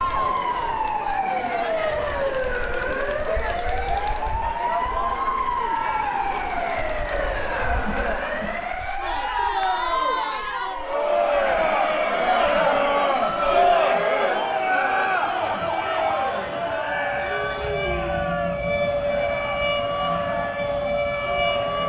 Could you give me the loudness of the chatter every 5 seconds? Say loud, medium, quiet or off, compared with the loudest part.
medium, medium, loud, medium, medium.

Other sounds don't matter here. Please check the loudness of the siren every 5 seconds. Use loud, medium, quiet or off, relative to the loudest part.
loud, loud, medium, loud, loud.